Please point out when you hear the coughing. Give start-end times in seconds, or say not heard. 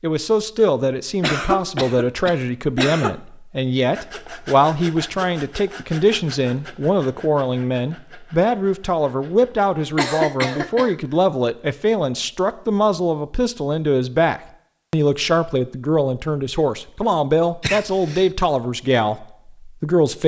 1.2-3.1, 9.9-10.9, 17.6-18.3.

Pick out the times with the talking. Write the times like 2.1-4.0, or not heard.
0.0-20.2.